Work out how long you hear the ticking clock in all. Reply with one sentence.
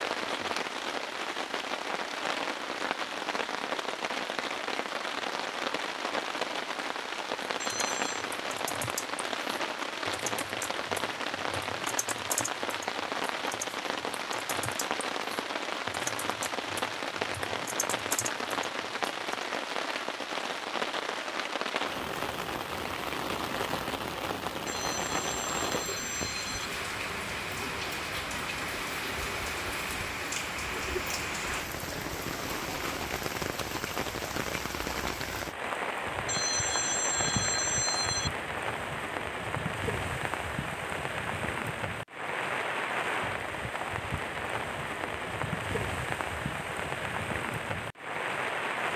You can't hear the ticking clock here.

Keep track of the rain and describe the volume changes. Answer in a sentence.
The volume of the rain stays about the same.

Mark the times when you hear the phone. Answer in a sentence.
The phone can be heard from 7.6 to 8.2 s, from 24.6 to 26.7 s and from 36.2 to 38.3 s.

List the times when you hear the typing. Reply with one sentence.
You can hear the typing from 7.6 to 19.4 s.